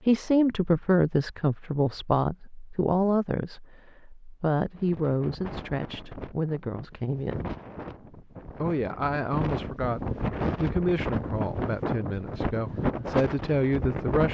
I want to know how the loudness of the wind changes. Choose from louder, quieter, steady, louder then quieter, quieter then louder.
louder.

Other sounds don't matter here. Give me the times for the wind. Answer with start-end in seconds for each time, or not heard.
4.8-14.2.